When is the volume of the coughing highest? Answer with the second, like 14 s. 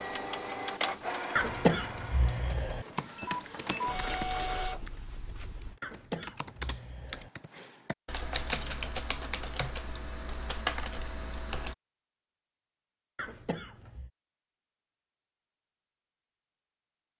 2 s.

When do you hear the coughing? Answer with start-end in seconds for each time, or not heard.
1.4-2.9, 5.8-7.3, 13.2-14.1.